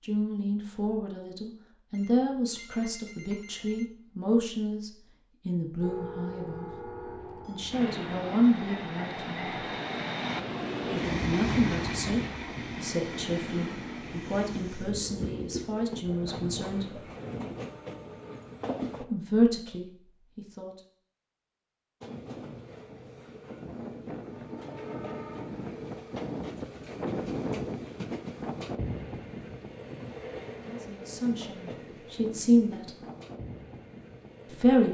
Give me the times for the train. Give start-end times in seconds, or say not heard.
5.8-19.1, 22.0-34.8.